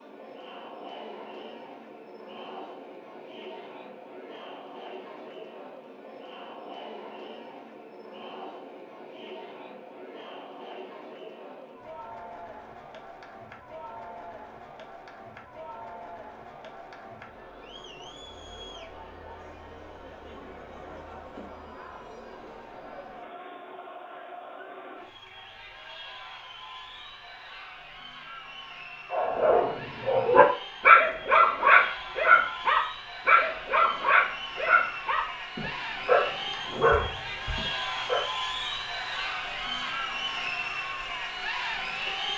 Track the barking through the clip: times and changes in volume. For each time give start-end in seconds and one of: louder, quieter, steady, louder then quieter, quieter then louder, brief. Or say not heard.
29.1-38.3 quieter.